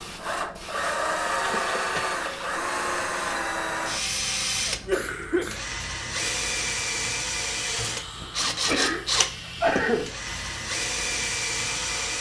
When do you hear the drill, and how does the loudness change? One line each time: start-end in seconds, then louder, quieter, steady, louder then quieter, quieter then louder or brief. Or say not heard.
0.1-12.1 steady.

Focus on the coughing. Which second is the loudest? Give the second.
10 s.